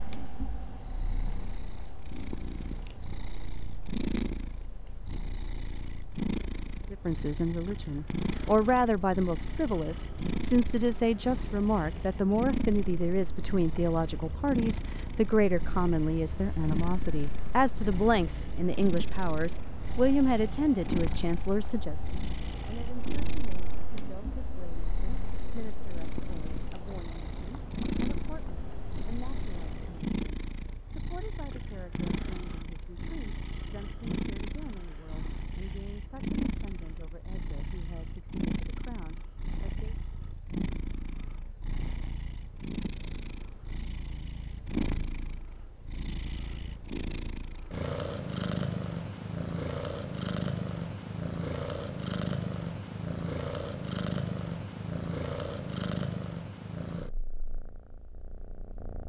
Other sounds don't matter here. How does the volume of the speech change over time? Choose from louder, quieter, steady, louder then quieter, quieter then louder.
quieter.